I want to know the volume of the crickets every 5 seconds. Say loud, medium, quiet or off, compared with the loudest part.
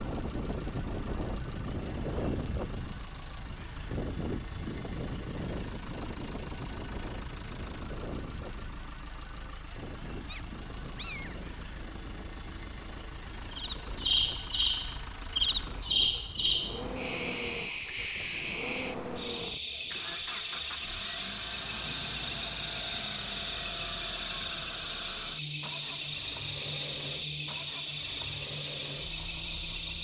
off, off, loud, loud, loud, loud.